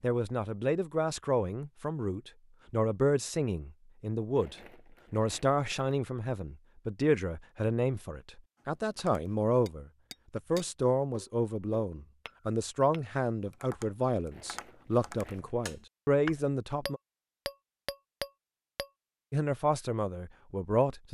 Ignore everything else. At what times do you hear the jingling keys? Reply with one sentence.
The jingling keys can't be heard in this clip.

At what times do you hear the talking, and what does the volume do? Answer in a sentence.
You can hear the talking from 0.0 to 17.0 s, at a steady volume; and briefly from 19.3 to 21.0 s.